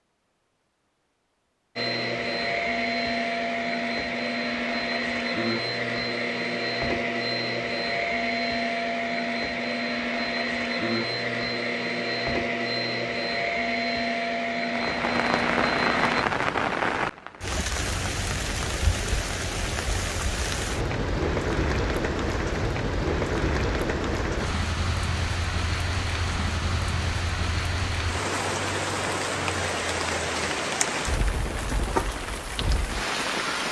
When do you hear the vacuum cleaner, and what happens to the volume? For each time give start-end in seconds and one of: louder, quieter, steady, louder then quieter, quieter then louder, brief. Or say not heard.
1.8-16.2 steady.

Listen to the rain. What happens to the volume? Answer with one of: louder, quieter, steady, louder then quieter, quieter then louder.
steady.